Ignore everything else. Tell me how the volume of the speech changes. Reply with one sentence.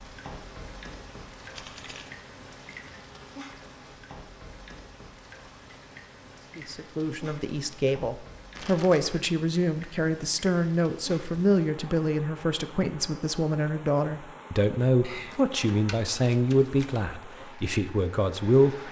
The volume of the speech stays about the same.